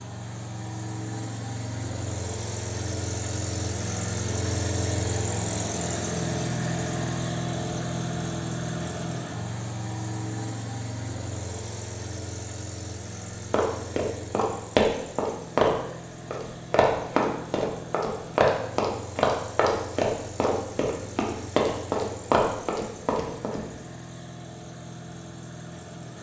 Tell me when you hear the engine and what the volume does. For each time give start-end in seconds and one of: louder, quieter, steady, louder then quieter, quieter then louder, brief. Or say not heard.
0.0-26.1 quieter.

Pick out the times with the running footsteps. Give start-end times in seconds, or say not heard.
13.5-23.6.